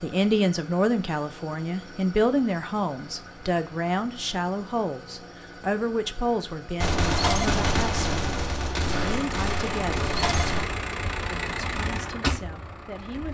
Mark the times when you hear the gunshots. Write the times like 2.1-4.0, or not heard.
6.8-10.8.